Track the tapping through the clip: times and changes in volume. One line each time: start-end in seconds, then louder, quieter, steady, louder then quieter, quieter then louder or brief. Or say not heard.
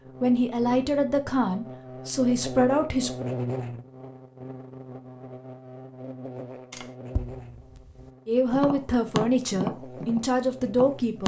6.7-11.2 louder then quieter.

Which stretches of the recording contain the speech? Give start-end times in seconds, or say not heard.
0.2-3.2, 8.2-11.2.